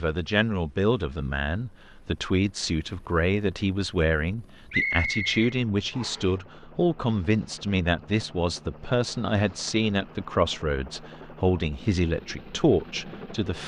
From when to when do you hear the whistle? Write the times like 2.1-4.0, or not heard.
4.7-6.3.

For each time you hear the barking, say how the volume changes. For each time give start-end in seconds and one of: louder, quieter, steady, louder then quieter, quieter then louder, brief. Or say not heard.
not heard.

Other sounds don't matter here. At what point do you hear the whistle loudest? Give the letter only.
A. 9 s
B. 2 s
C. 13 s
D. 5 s
D.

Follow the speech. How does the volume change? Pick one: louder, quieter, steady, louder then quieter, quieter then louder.
steady.